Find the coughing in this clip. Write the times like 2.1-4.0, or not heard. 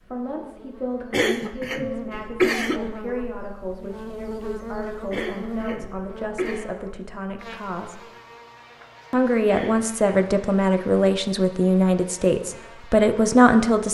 1.1-2.8, 5.1-6.7, 9.5-10.8.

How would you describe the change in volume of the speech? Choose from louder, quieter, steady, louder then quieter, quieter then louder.
louder.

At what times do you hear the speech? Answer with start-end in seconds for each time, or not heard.
0.0-8.0, 9.1-13.9.